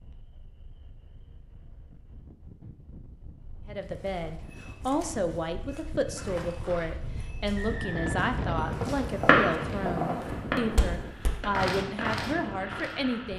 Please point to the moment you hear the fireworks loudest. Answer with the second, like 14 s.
9 s.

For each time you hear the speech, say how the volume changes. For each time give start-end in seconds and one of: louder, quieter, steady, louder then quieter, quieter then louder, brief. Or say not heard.
3.6-13.3 steady.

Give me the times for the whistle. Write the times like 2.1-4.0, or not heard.
7.5-8.2.